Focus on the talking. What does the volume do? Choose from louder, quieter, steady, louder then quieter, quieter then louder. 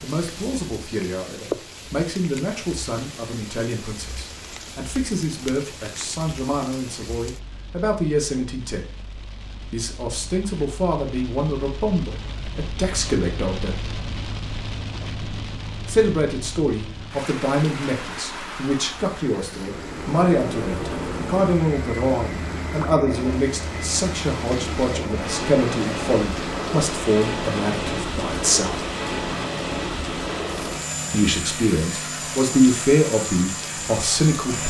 louder.